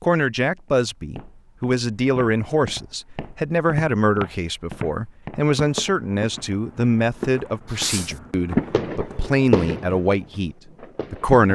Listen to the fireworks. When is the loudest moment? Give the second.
9 s.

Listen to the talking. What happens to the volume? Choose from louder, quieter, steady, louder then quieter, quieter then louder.
steady.